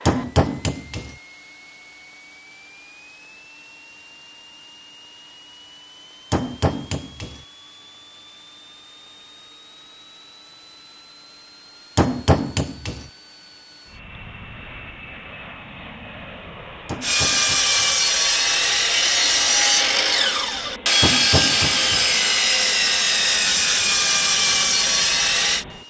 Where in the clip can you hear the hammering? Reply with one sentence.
The hammering can be heard from 0.1 to 1.1 s, from 6.3 to 7.4 s, from 11.9 to 13.1 s, from 16.9 to 17.9 s and from 21.0 to 22.1 s.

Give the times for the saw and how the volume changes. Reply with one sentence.
The saw can be heard from 17.0 to 25.6 s, at a steady volume.